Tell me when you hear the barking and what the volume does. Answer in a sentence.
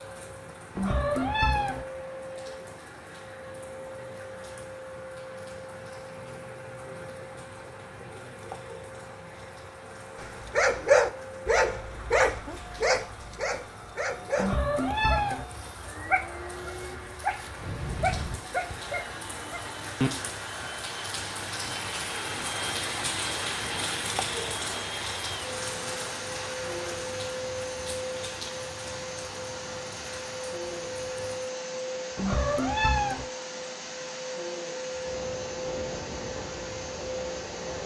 You can hear the barking from 10.2 to 20.1 s, getting quieter.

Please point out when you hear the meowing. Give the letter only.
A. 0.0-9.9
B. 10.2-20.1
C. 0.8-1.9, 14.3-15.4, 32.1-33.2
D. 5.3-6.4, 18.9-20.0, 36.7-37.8
C.